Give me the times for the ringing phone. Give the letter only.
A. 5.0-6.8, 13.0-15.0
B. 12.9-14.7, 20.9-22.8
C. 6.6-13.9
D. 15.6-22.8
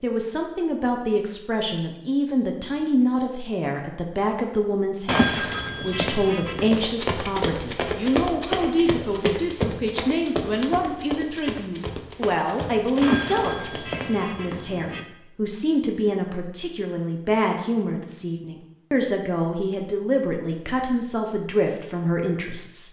A.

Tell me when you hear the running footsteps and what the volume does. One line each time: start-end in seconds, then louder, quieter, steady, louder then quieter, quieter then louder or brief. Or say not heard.
6.6-13.9 quieter.